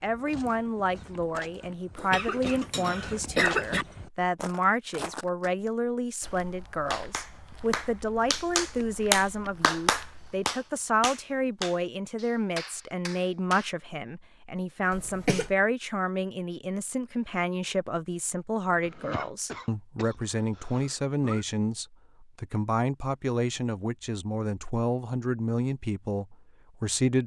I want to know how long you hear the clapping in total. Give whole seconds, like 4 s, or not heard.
7 s.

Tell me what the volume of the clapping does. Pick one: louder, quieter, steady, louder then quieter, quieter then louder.
louder then quieter.